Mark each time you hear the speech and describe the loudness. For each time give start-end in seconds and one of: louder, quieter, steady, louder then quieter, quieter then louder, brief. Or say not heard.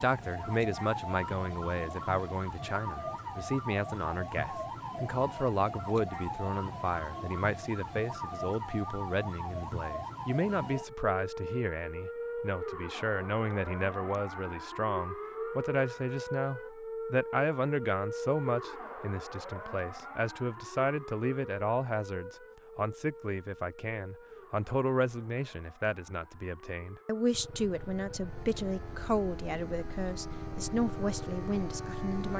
0.0-32.3 steady.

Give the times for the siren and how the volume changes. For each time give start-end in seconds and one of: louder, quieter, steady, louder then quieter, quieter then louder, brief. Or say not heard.
0.0-32.3 quieter.